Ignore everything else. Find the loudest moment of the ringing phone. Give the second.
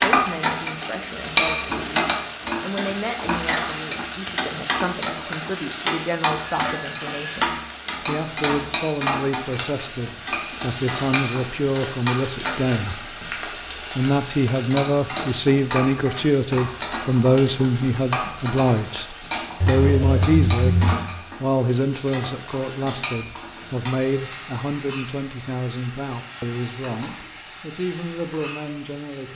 21 s.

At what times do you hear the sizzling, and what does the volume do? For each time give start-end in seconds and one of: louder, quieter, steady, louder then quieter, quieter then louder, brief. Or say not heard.
0.0-29.3 quieter.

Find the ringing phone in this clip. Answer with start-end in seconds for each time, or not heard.
6.5-7.6, 19.6-21.1.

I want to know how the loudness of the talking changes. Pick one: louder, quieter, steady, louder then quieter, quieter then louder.
louder then quieter.